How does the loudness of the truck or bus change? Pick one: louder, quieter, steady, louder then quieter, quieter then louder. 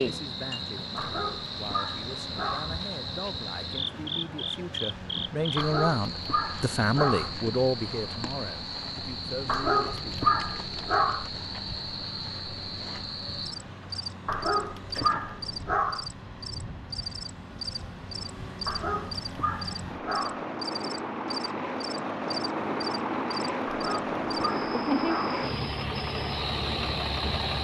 louder.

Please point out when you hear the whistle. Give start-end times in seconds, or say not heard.
not heard.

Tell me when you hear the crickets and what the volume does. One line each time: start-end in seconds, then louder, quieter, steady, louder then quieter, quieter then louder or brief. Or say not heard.
0.0-27.5 steady.